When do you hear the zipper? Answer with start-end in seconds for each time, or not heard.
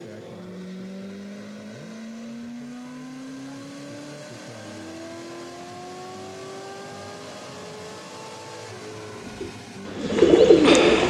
not heard.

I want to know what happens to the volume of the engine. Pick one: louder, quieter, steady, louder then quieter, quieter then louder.
steady.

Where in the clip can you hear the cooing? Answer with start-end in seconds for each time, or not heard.
9.2-11.0.